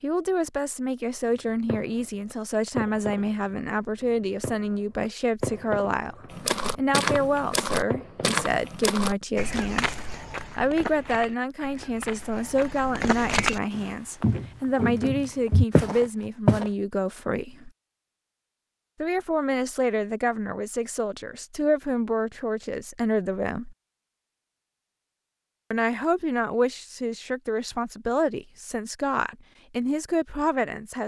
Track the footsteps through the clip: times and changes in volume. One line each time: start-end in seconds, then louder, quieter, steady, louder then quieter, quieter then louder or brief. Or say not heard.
6.3-16.7 quieter then louder.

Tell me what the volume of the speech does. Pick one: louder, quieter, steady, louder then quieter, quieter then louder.
steady.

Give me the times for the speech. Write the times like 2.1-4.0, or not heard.
0.0-9.9, 10.6-17.7, 19.0-23.8, 25.7-31.0.